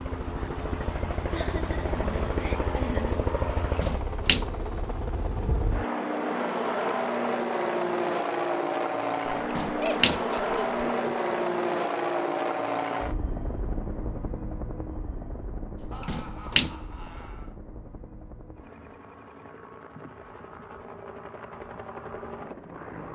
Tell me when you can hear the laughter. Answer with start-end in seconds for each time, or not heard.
1.3-3.2, 9.8-11.3, 15.9-17.6.